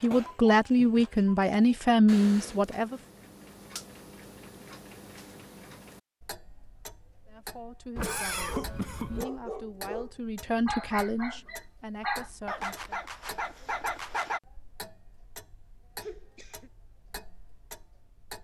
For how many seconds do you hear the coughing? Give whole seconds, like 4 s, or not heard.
3 s.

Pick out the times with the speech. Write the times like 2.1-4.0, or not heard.
0.0-3.0, 7.2-13.0.